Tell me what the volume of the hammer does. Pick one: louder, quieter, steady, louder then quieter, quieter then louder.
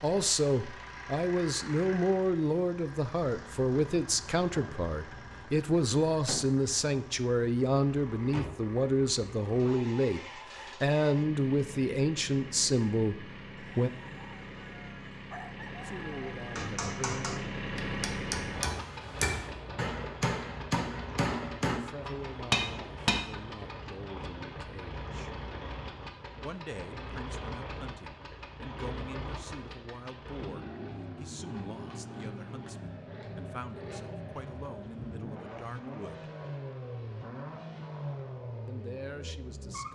louder.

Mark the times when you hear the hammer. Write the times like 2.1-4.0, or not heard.
16.6-23.2.